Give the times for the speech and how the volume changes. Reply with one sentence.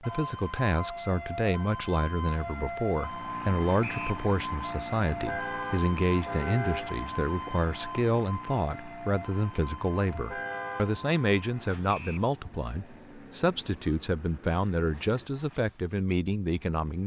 You can hear the speech from 0.0 to 17.0 s, at a steady volume.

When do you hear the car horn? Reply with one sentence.
You can hear the car horn from 5.1 to 6.9 s and from 10.1 to 11.0 s.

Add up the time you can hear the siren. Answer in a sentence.
The siren can be heard for 15 seconds in total.